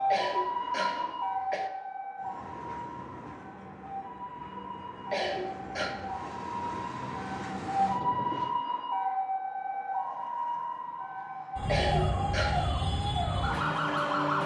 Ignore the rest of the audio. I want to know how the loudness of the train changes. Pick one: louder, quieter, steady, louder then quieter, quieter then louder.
louder.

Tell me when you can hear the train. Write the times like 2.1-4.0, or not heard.
2.1-8.6.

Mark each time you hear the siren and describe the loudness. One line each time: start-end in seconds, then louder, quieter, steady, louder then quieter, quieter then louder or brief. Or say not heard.
0.0-14.4 quieter then louder.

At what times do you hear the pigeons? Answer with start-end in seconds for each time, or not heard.
not heard.